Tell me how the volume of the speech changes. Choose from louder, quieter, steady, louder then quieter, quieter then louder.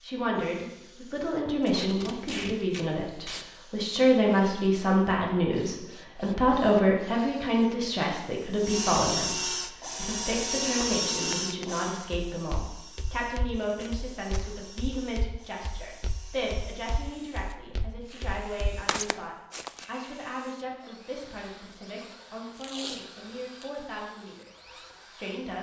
quieter.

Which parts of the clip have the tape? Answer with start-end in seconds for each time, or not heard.
1.6-3.5, 13.7-14.4, 22.6-23.6.